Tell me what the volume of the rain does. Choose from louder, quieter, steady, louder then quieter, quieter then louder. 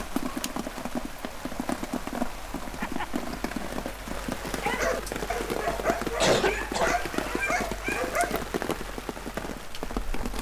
steady.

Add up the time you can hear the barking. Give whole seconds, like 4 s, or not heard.
4 s.